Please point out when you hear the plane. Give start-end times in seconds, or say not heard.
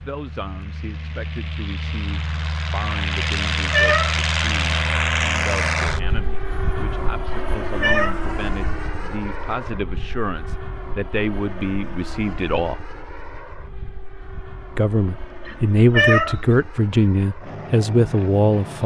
0.0-18.8.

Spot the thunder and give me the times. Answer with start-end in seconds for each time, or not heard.
not heard.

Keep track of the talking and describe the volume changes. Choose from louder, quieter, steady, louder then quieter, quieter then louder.
louder.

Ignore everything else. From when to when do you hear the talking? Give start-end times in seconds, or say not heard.
0.0-12.8, 14.8-18.8.